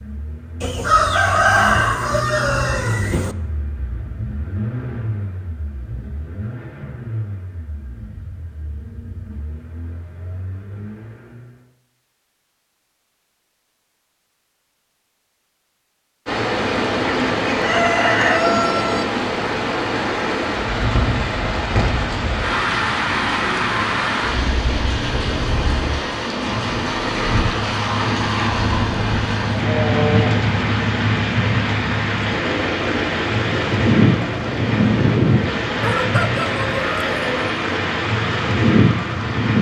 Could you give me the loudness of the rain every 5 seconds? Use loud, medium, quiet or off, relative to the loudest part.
off, off, off, loud, loud, loud, loud, loud.